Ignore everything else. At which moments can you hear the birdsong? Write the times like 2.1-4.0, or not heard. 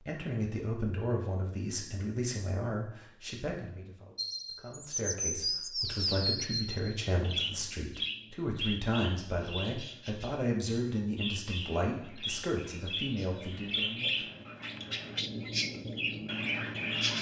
4.2-17.1.